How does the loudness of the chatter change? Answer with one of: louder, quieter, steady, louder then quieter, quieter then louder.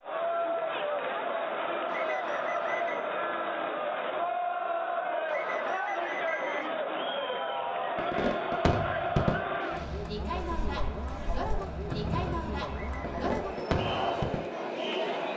steady.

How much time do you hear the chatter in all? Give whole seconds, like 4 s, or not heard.
15 s.